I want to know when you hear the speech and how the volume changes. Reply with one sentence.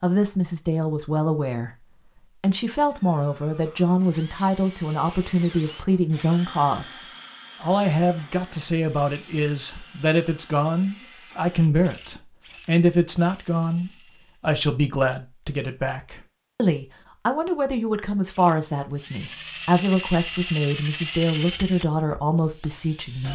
You can hear the speech from 0.0 to 23.2 s, at a steady volume.